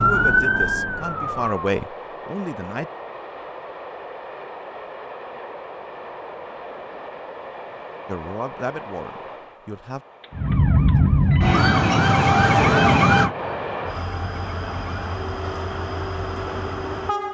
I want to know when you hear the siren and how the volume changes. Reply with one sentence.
The siren can be heard briefly from 0.0 to 1.6 s; and from 10.3 to 17.2 s, getting quieter.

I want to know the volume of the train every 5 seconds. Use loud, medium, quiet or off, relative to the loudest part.
medium, medium, loud, loud.